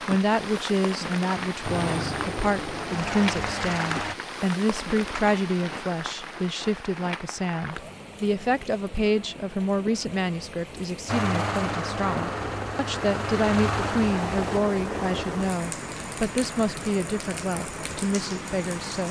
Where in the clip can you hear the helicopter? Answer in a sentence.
You can hear the helicopter from 1.6 to 4.2 s and from 11.1 to 14.6 s.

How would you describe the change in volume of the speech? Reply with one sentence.
The loudness of the speech stays about the same.